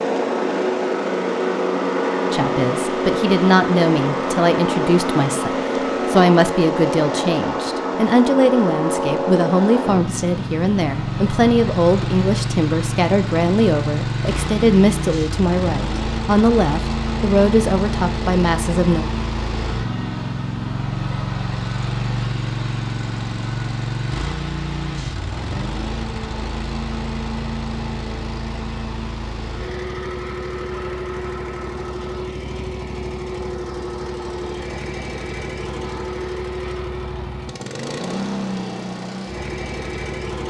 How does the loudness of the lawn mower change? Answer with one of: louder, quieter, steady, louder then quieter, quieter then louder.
quieter.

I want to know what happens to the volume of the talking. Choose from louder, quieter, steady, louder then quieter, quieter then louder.
steady.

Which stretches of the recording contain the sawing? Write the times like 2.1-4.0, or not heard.
not heard.